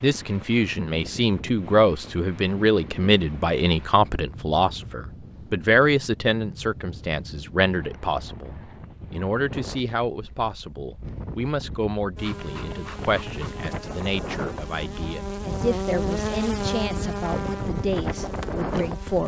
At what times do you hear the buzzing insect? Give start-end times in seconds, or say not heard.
12.2-19.2.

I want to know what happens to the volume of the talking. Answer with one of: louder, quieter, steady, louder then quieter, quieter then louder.
quieter.